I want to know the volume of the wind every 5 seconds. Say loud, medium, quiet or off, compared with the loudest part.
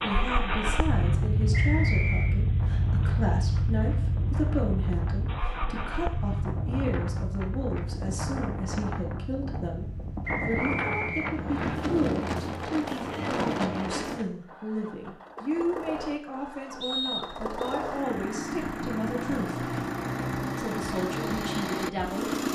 quiet, medium, loud, off, off.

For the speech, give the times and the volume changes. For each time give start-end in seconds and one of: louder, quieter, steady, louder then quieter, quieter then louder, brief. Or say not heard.
0.0-19.7 steady
20.6-22.2 brief.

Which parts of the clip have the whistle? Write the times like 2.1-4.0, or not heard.
1.5-2.4, 10.2-11.8, 16.8-17.6.